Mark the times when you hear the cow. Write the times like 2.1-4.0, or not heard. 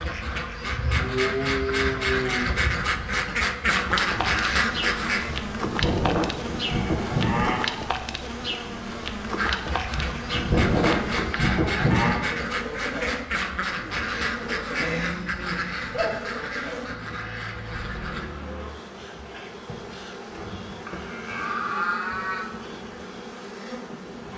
0.8-2.5, 5.2-7.6, 9.9-12.2, 14.8-16.2, 20.9-22.4.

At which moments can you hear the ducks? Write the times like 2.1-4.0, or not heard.
0.0-5.3, 9.2-18.4.